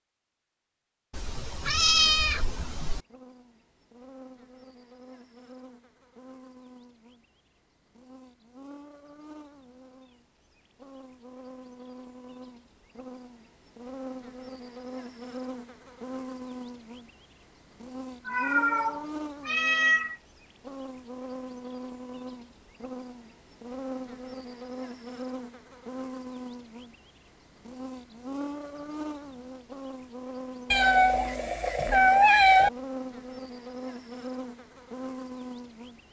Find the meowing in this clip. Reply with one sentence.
You can hear the meowing from 1.1 to 3.0 s, from 18.2 to 20.1 s and from 30.7 to 32.7 s.